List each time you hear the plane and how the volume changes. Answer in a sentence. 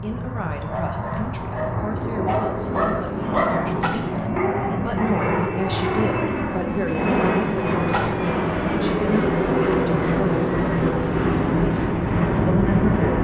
The plane can be heard from 0.0 to 13.1 s, getting louder.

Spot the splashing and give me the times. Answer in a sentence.
You can hear the splashing from 3.8 to 4.2 s and from 7.9 to 8.3 s.